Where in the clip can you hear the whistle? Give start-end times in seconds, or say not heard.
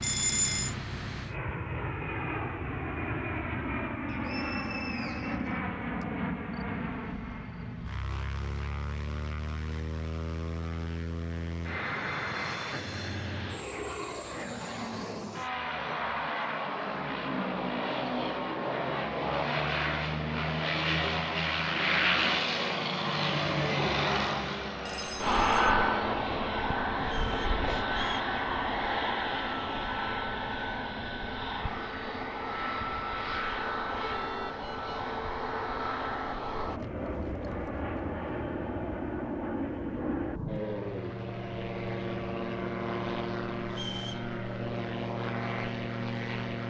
4.0-6.0, 27.0-28.4, 43.7-44.3.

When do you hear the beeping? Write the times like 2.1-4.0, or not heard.
0.0-0.8, 24.9-25.8, 34.0-34.9.